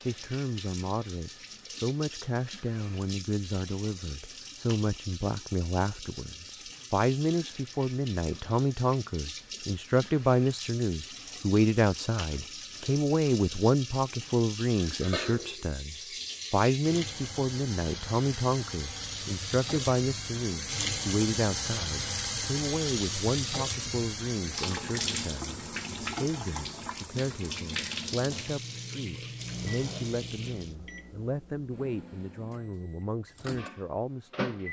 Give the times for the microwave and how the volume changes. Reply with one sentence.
The microwave can be heard from 29.4 to 34.6 s, getting quieter then louder.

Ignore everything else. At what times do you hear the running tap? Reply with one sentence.
The running tap can be heard from 0.0 to 30.8 s.